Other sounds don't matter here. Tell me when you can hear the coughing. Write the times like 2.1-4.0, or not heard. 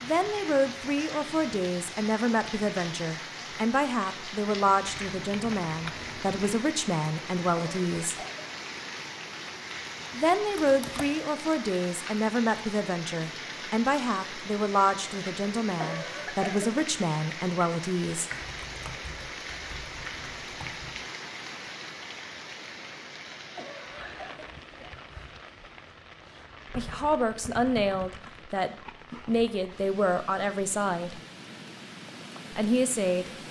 7.5-8.4, 15.8-16.7, 23.6-24.9.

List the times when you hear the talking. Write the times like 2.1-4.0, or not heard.
0.0-8.2, 10.1-18.3, 26.8-31.2, 32.5-33.3.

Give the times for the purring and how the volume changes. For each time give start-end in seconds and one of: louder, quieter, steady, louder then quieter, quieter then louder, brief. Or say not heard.
not heard.